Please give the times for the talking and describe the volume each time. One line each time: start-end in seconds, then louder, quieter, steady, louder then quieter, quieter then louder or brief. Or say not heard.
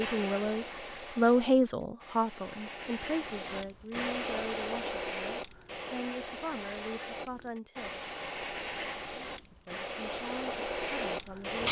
0.0-8.0 quieter
9.3-11.6 brief.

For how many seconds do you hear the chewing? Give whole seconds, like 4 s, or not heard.
not heard.